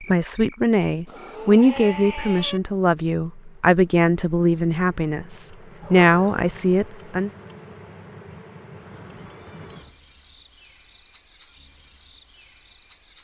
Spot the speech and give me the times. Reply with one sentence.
The speech can be heard from 0.0 to 7.3 s.